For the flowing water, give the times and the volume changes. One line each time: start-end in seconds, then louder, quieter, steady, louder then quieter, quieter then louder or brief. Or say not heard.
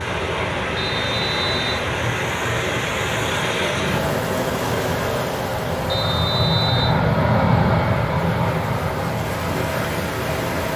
0.0-10.7 quieter then louder.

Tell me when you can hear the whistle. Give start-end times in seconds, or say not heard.
0.8-1.9, 5.9-7.0.